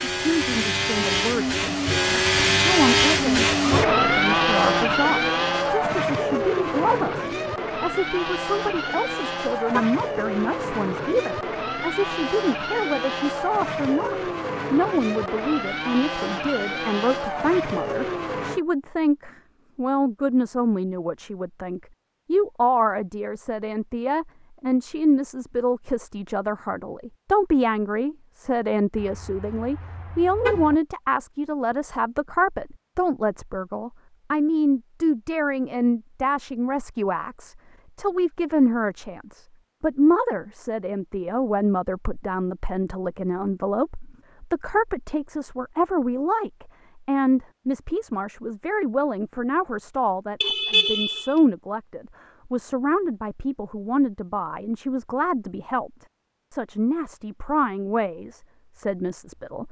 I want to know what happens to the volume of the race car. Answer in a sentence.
The volume of the race car goes down.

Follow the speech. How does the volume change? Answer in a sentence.
The loudness of the speech stays about the same.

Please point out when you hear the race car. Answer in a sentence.
The race car can be heard from 0.0 to 18.6 s.